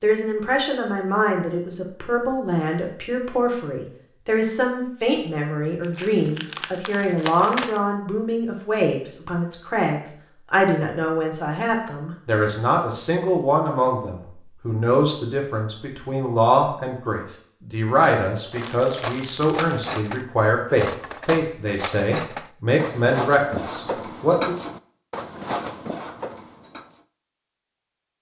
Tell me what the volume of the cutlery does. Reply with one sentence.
The volume of the cutlery stays about the same.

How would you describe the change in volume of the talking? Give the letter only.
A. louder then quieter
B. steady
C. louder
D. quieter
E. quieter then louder
B.